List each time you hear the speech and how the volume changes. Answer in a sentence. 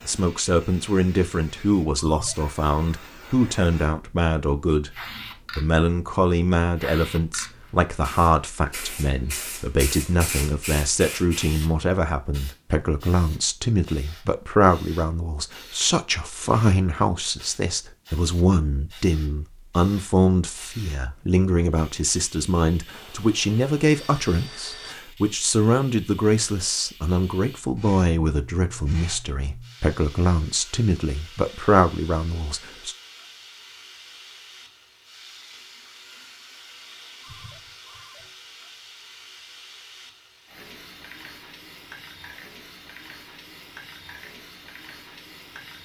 You can hear the speech from 0.1 to 5.0 s, at a steady volume; and from 5.5 to 33.0 s, at a steady volume.